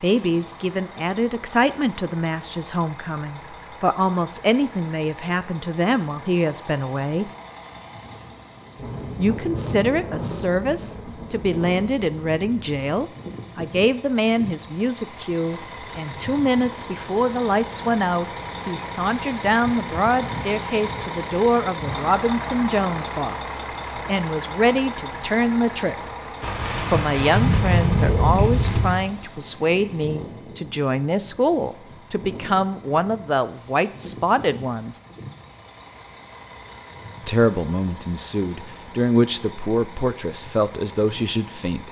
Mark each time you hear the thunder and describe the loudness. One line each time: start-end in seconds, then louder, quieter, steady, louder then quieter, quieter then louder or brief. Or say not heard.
8.8-13.1 quieter
26.4-29.0 brief.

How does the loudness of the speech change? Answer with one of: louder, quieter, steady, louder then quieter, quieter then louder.
steady.